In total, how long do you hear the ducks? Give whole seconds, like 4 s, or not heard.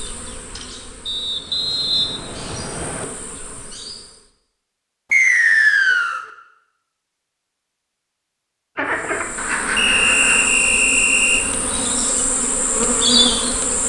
2 s.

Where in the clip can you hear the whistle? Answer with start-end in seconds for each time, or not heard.
1.1-3.0, 5.1-6.2, 9.8-11.4.